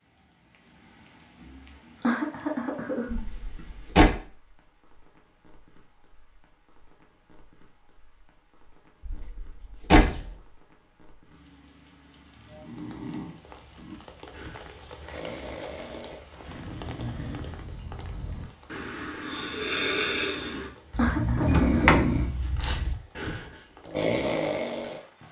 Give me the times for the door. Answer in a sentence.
You can hear the door from 3.1 to 4.2 s, from 9.1 to 10.3 s and from 21.4 to 22.8 s.